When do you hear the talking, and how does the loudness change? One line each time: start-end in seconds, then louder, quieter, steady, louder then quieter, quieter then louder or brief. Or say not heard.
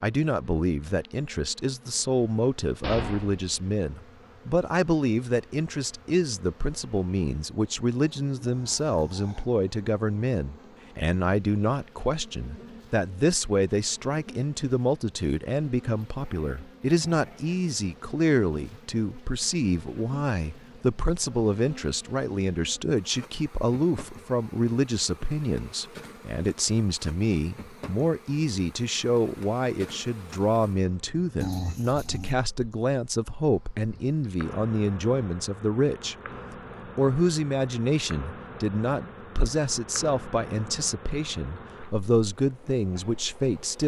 0.0-36.1 steady
37.0-43.8 steady.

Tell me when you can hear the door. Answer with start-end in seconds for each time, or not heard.
2.8-3.5.